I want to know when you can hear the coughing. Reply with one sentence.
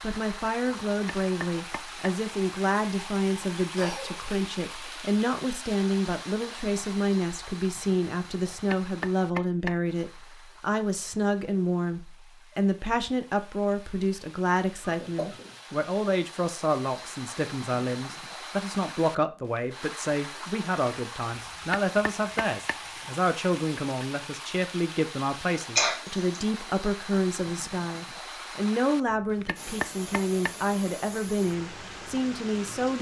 You can hear the coughing from 3.8 to 4.3 s, from 14.8 to 15.6 s and from 25.8 to 26.4 s.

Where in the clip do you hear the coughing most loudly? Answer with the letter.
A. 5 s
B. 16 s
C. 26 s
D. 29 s
C.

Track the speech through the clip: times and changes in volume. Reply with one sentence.
You can hear the speech from 0.0 to 32.9 s, at a steady volume.